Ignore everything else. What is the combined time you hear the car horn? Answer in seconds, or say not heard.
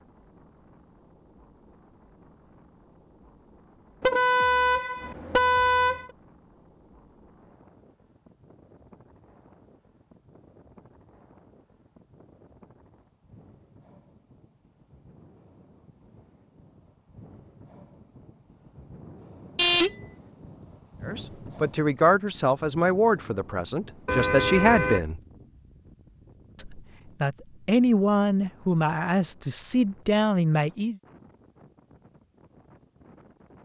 4 s.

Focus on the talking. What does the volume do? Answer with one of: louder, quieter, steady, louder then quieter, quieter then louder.
steady.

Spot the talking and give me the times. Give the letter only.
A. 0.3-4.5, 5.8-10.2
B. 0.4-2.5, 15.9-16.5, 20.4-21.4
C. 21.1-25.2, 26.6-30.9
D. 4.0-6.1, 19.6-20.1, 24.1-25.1
C.